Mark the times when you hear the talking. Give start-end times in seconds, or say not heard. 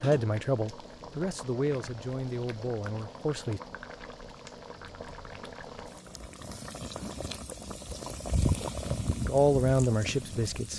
0.0-3.6, 9.2-10.7.